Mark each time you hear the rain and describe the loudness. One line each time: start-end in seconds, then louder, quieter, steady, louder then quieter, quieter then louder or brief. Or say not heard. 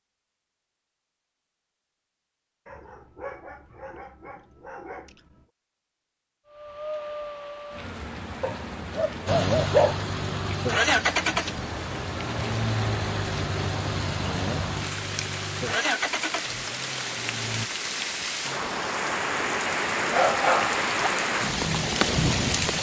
6.5-22.7 louder.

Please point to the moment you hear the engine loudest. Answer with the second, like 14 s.
11 s.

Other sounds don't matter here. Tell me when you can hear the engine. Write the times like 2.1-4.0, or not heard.
9.2-17.7.